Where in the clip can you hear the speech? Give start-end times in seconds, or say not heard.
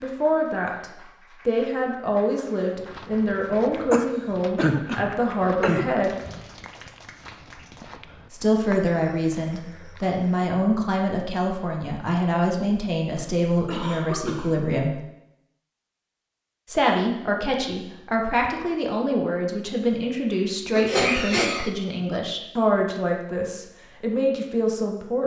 0.0-6.2, 8.3-15.0, 16.6-25.2.